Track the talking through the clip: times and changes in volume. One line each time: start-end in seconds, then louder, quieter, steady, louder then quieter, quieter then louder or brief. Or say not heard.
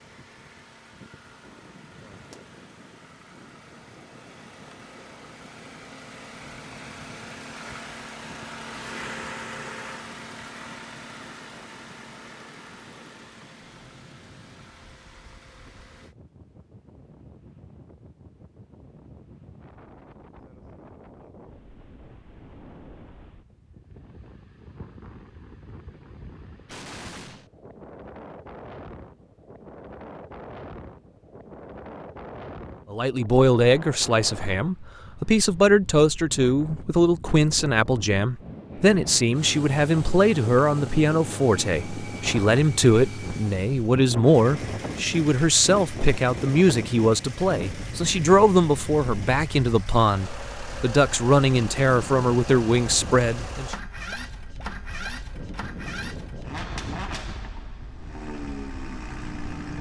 32.9-53.8 steady.